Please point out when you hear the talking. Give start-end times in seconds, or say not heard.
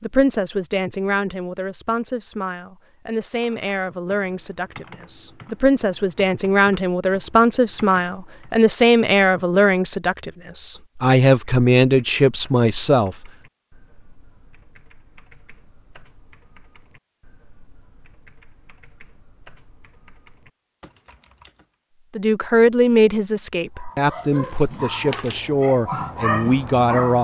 0.0-13.2, 22.1-27.2.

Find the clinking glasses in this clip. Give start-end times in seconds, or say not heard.
not heard.